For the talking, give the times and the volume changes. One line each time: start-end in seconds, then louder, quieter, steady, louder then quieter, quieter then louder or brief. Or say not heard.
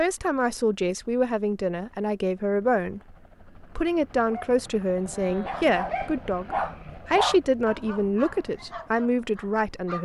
0.0-10.0 steady.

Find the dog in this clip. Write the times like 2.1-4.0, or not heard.
4.1-10.0.